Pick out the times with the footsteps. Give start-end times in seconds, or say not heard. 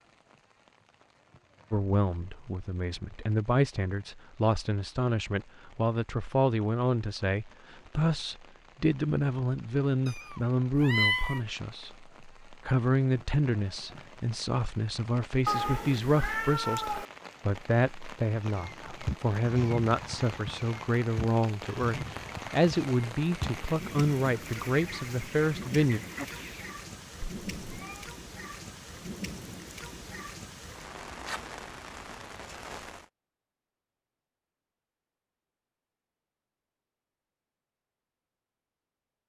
not heard.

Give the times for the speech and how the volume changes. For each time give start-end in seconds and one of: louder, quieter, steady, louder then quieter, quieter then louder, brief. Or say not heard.
1.7-26.0 steady.